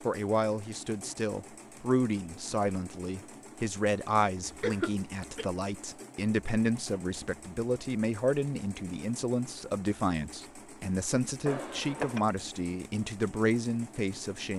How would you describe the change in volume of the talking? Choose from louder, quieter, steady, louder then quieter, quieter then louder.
steady.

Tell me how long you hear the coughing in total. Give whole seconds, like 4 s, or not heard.
2 s.